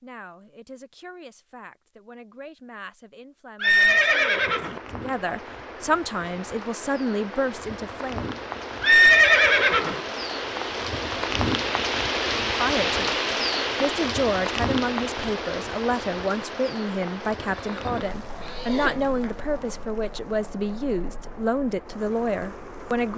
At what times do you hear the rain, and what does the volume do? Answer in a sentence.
You can hear the rain from 3.6 to 23.1 s, getting louder then quieter.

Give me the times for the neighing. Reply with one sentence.
The neighing can be heard from 3.6 to 4.8 s, from 8.8 to 10.0 s and from 17.6 to 19.2 s.